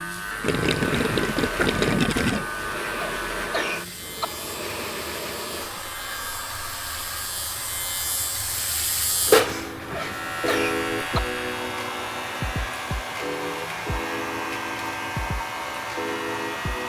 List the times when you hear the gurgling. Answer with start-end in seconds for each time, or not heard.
0.4-2.5.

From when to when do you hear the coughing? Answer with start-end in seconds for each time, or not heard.
3.0-4.2, 9.9-11.2.